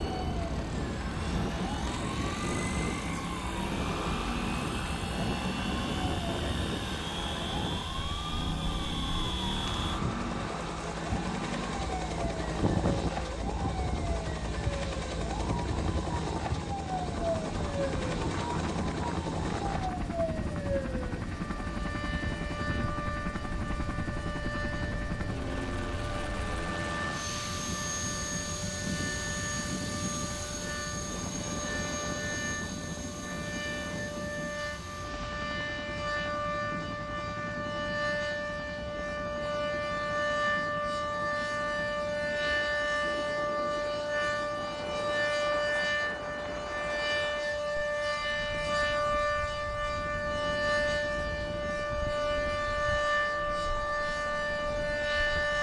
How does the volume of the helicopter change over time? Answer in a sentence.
The loudness of the helicopter goes down.